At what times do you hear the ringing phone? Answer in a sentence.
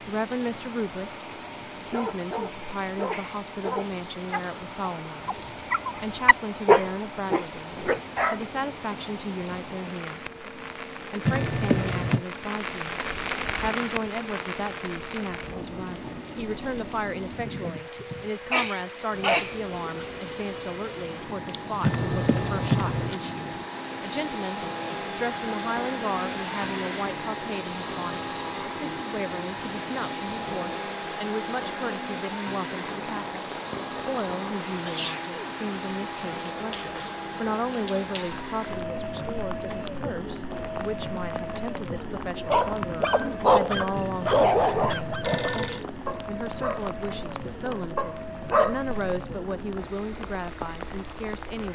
You can hear the ringing phone from 11.2 to 12.2 s, from 21.8 to 23.2 s and from 44.0 to 45.9 s.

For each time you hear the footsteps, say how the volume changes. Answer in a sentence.
You can't hear the footsteps here.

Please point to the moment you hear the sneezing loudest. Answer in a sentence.
The volume of the sneezing peaks at 19 seconds.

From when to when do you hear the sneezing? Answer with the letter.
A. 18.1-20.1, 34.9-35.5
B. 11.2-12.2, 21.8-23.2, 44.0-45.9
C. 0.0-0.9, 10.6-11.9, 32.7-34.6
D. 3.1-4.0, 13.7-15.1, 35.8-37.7
A.